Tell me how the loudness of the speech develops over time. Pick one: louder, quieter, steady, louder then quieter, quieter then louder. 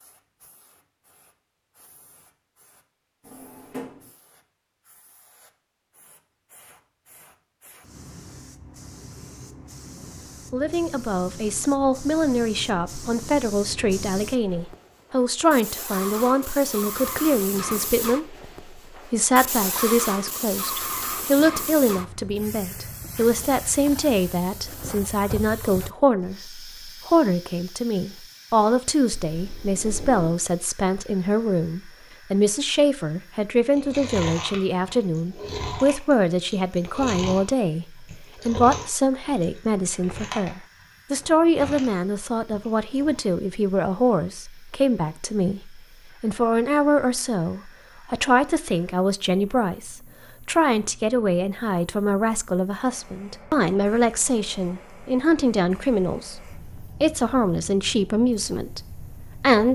steady.